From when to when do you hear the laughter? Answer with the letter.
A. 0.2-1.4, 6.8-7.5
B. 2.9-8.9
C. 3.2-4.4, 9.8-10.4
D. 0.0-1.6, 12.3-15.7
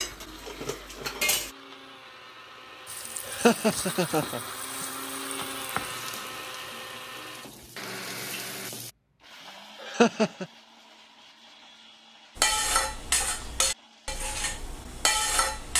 C.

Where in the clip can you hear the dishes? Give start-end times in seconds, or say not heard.
0.0-1.6, 12.3-15.7.